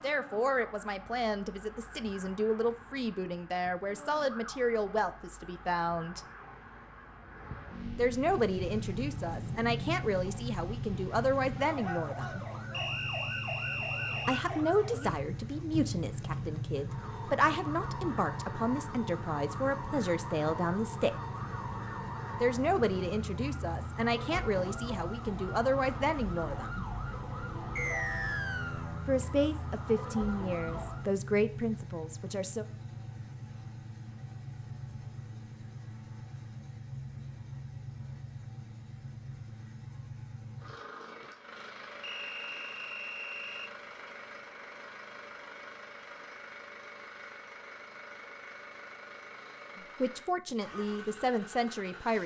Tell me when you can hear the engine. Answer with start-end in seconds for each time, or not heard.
8.3-52.2.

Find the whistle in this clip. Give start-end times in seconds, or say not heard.
12.7-14.4, 27.8-28.9, 42.0-43.7.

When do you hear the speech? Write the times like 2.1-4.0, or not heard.
0.0-6.2, 8.0-12.4, 14.2-21.1, 22.4-26.9, 29.1-32.6, 50.0-52.2.